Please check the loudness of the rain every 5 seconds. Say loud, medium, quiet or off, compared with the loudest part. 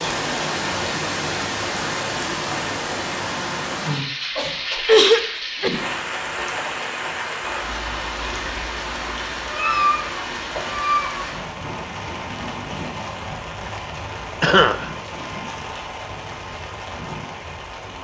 loud, loud, medium, medium.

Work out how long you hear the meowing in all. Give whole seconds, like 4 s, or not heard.
3 s.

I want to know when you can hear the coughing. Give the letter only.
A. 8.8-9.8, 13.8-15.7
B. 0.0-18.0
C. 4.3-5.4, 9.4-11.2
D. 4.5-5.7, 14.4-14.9
D.